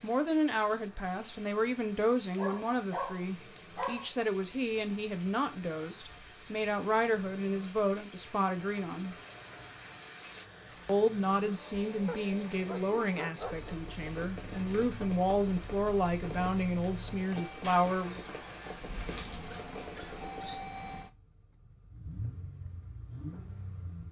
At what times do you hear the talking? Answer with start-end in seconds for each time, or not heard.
0.0-9.2, 10.8-18.2.